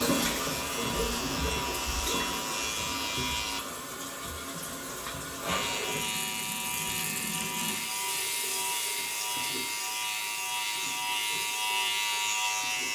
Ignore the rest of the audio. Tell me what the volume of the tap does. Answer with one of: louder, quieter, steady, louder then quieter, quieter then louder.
quieter.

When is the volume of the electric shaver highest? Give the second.
12 s.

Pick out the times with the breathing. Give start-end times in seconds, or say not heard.
not heard.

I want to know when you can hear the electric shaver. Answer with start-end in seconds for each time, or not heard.
0.0-3.6, 5.5-12.9.